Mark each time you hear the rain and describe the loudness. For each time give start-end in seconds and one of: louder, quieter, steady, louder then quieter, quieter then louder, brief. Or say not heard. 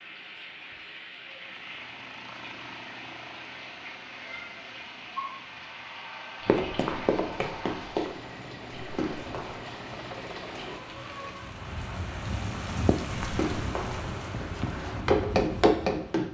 0.0-16.2 louder.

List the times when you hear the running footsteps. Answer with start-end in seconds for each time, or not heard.
6.5-9.6, 13.2-16.2.